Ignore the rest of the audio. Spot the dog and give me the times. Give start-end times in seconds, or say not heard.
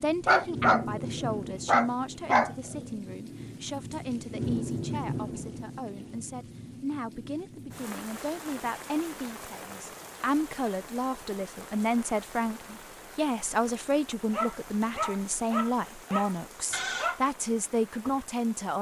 0.2-2.8, 14.3-17.2.